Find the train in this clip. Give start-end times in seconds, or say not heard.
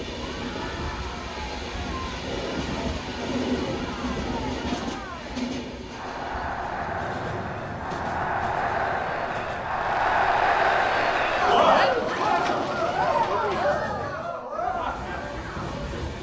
0.0-16.1.